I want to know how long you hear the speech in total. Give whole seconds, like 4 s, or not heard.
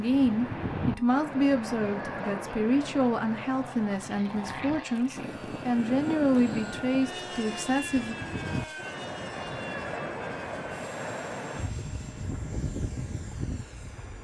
8 s.